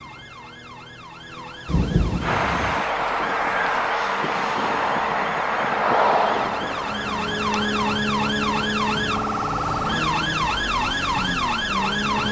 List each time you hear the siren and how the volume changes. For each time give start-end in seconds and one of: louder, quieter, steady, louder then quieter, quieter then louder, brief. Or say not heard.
0.0-12.2 louder.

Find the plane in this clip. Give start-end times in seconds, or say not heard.
2.2-10.6.